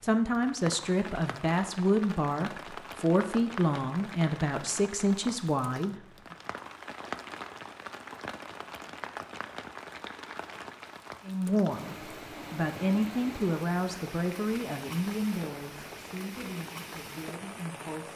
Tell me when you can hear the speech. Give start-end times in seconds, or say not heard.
0.0-6.3, 11.2-18.1.